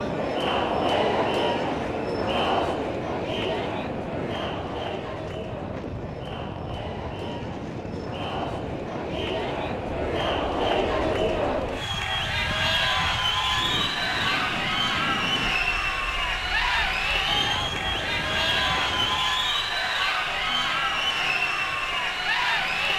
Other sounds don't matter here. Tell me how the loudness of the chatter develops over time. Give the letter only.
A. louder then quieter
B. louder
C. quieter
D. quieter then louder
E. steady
D.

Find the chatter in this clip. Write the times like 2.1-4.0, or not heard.
0.0-22.9.